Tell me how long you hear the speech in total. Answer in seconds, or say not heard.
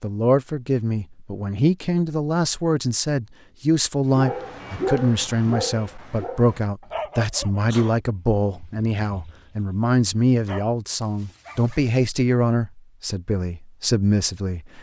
15 s.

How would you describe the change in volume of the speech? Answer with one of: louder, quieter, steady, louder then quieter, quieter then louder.
steady.